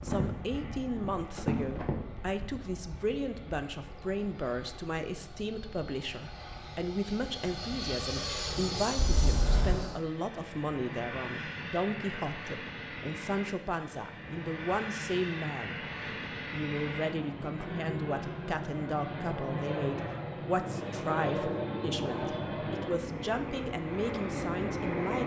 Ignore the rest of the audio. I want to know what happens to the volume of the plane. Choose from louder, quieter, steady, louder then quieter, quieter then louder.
louder.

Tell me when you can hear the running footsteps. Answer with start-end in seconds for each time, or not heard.
0.0-1.9.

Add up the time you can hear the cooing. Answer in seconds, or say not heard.
not heard.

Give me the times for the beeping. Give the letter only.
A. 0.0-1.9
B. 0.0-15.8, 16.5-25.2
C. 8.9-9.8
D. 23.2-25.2
C.